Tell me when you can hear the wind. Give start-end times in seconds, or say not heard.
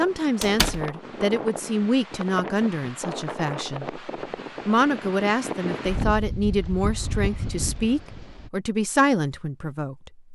0.0-8.5.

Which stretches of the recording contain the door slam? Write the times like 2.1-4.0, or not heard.
0.4-0.8.